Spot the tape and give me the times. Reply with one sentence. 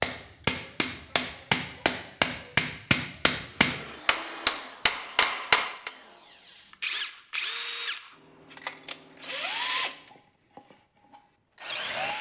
You can't hear the tape here.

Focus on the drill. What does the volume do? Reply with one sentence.
The volume of the drill goes up, then down.